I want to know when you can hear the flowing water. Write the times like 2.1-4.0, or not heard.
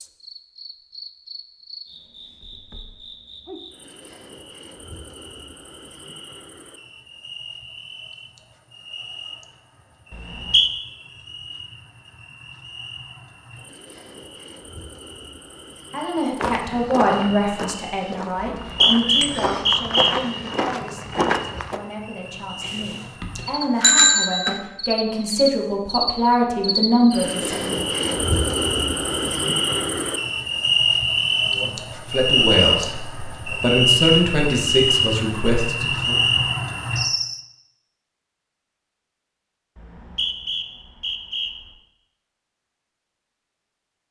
not heard.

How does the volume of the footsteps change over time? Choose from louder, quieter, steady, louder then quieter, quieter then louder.
quieter then louder.